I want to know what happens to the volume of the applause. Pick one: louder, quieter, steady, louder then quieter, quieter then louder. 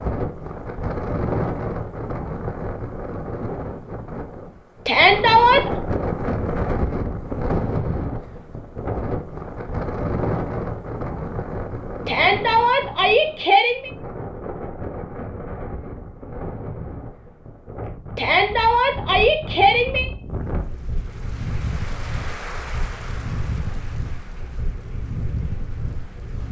louder then quieter.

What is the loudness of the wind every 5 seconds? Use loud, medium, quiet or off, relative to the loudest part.
loud, loud, loud, medium, medium, medium.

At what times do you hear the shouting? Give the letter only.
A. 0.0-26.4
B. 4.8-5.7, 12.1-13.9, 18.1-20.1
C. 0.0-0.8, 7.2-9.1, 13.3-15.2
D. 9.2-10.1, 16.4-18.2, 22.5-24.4
B.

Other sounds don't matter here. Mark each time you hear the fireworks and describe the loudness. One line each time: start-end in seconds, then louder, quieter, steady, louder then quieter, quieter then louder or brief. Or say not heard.
not heard.